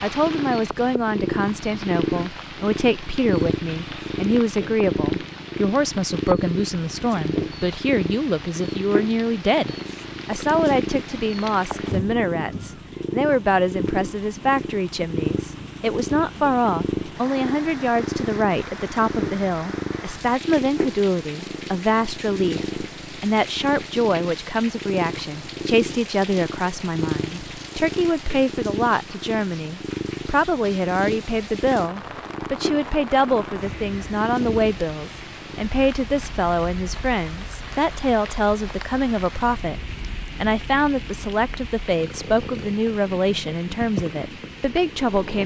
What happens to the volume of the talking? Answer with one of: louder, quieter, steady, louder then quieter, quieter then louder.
steady.